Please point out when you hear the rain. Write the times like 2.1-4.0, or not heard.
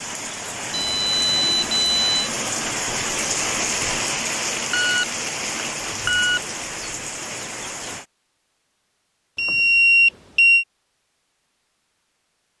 0.0-8.1.